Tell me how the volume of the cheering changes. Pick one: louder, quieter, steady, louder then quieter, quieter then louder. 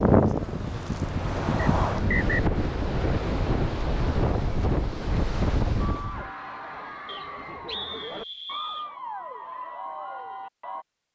steady.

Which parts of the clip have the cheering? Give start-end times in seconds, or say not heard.
5.8-10.8.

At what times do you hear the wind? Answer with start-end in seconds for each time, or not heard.
0.0-6.3.